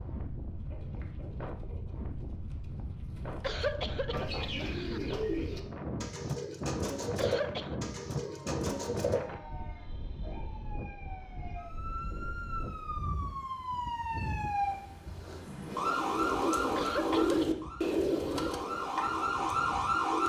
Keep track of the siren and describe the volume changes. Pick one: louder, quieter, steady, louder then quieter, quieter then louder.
louder.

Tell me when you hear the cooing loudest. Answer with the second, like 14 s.
17 s.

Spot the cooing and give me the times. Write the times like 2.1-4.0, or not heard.
0.5-9.2, 15.6-20.2.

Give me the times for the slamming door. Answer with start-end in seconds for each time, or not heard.
not heard.